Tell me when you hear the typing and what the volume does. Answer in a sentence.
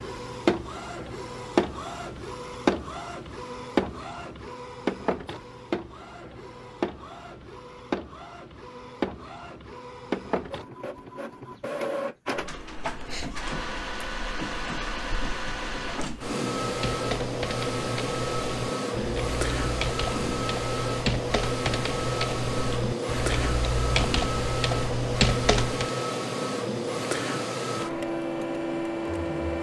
The typing can be heard from 16.6 to 25.9 s, getting louder.